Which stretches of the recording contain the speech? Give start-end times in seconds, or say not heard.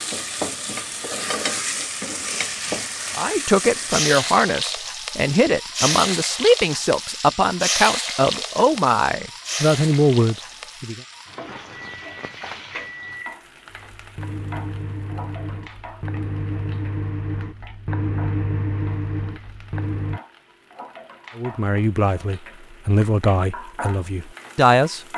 3.1-11.0, 21.4-25.0.